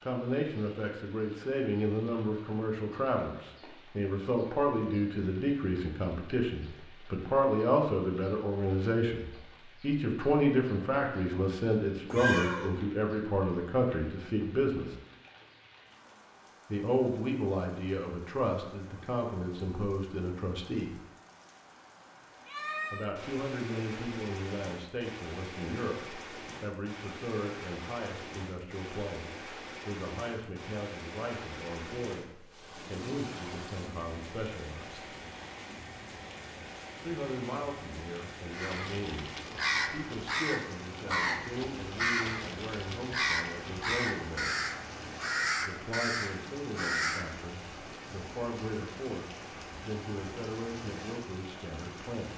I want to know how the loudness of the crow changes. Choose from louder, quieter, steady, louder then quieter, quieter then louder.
steady.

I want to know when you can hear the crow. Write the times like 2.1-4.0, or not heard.
38.5-47.2.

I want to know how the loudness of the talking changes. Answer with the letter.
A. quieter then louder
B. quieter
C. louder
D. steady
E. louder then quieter
B.